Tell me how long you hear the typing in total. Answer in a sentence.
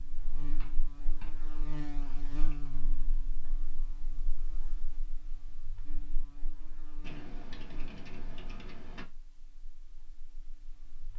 You can hear the typing for 4 seconds altogether.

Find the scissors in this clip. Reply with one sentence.
The scissors can't be heard in this clip.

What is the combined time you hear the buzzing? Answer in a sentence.
You can hear the buzzing for 11 seconds altogether.